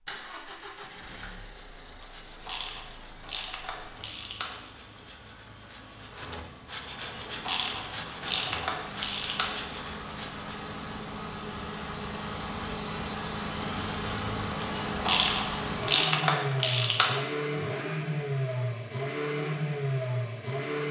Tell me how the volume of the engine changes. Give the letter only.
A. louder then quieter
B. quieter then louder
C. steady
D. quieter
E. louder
E.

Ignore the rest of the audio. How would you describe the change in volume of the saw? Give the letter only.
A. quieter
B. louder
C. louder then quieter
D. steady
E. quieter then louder
B.